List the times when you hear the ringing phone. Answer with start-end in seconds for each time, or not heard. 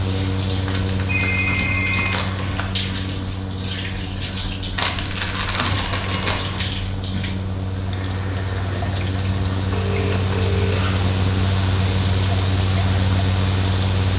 1.1-2.1, 5.7-6.4, 9.7-11.0.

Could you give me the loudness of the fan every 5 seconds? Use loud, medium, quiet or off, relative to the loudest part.
medium, medium, loud.